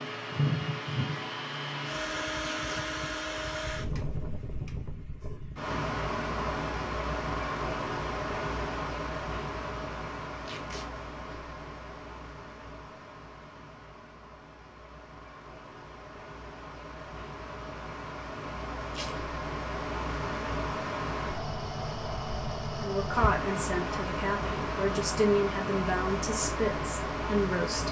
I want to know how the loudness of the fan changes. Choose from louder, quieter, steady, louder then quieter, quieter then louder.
quieter then louder.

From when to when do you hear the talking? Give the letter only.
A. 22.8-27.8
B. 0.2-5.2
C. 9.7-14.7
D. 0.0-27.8
A.